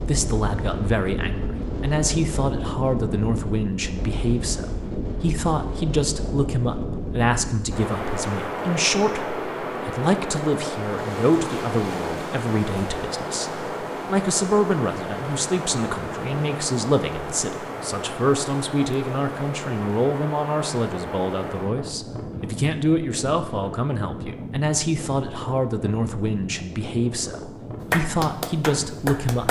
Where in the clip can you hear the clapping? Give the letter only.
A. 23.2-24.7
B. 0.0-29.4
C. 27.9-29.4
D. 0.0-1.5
C.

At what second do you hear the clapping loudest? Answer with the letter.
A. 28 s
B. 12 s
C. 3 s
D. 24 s
A.